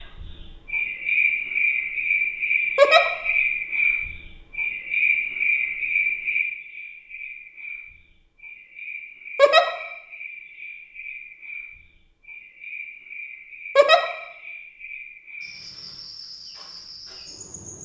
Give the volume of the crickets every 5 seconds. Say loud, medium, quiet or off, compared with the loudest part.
loud, loud, quiet, quiet.